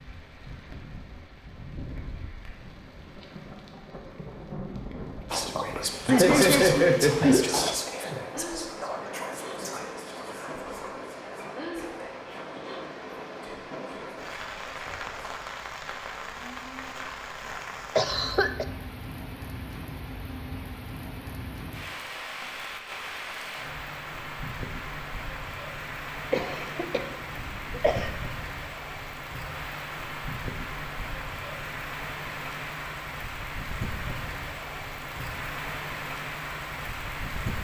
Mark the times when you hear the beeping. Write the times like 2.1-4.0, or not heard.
not heard.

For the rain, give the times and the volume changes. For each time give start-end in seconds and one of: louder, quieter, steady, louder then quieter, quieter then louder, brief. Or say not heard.
0.0-37.5 louder.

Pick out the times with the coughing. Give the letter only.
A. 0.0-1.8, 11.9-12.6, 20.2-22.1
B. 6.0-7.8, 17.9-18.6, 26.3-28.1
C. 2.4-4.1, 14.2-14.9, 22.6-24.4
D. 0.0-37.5
B.